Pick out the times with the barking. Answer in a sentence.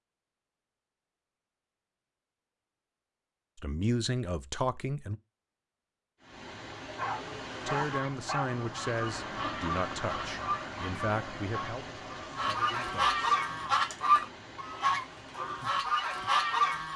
You can hear the barking from 6.8 to 8.5 s.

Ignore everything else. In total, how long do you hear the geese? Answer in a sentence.
You can hear the geese for 9 seconds altogether.